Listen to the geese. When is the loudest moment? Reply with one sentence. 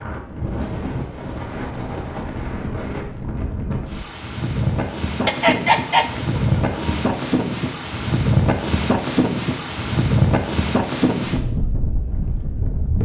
The loudest moment of the geese is at 6 seconds.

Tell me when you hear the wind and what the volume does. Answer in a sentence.
The wind can be heard from 0.0 to 13.0 s, getting louder.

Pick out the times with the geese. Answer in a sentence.
You can hear the geese from 5.2 to 7.2 s.